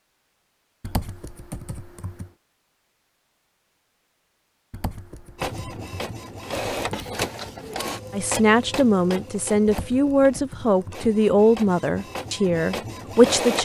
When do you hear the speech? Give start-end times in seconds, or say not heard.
8.1-13.6.